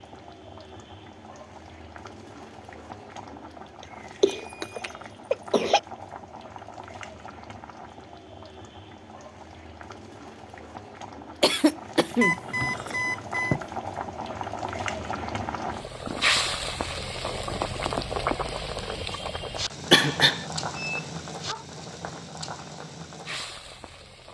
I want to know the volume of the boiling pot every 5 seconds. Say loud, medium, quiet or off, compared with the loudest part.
quiet, quiet, medium, loud, medium.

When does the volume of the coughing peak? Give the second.
20 s.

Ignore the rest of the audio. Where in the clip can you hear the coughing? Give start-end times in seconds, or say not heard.
3.8-5.8, 11.4-13.6, 19.9-20.4.